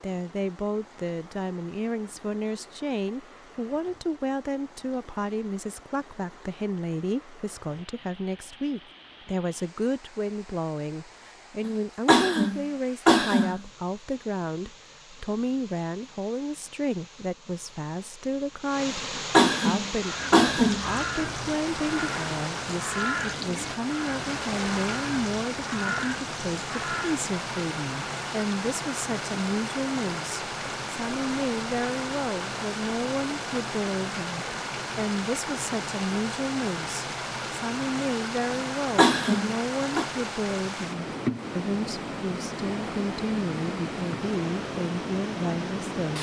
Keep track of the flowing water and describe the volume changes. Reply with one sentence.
The volume of the flowing water goes up.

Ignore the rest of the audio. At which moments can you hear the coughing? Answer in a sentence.
You can hear the coughing from 12.1 to 13.6 s, from 19.3 to 20.9 s and from 39.0 to 40.0 s.